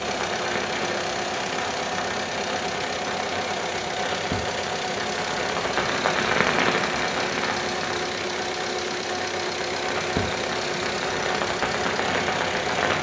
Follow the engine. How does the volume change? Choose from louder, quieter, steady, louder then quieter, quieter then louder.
steady.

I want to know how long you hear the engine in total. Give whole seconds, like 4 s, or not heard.
13 s.